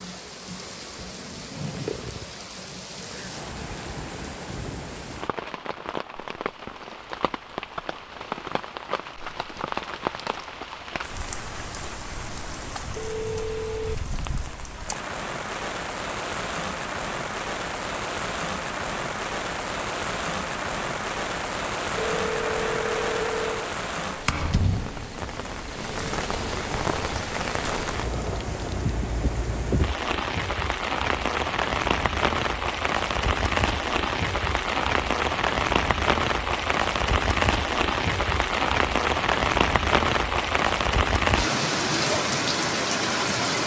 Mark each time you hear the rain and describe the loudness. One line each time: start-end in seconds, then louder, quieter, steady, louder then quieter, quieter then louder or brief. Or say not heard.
0.0-43.6 louder.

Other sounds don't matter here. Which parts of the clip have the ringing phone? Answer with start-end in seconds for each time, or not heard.
12.9-13.9, 21.9-23.7.